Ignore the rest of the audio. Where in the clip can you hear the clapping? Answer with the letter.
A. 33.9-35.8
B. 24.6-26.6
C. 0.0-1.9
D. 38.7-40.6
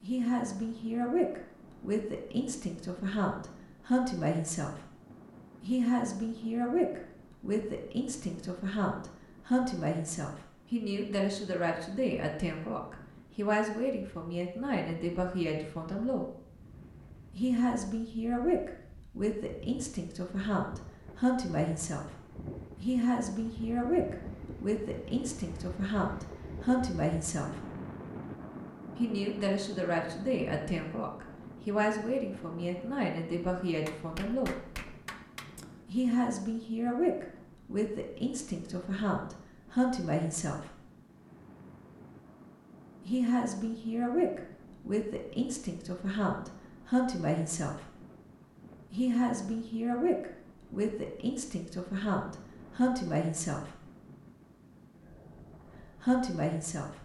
A.